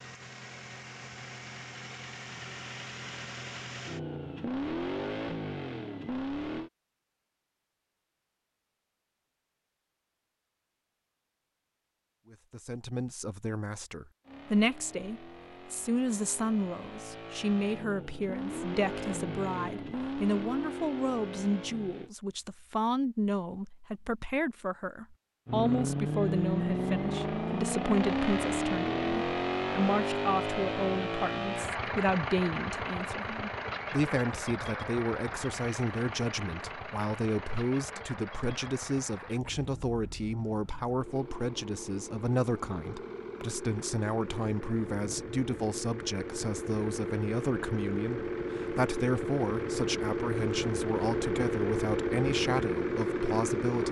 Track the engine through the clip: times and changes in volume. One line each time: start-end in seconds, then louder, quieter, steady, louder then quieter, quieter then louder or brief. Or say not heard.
0.0-6.7 louder
14.2-22.1 louder
25.4-53.8 quieter then louder.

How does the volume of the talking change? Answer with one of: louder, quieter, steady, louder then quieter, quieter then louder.
steady.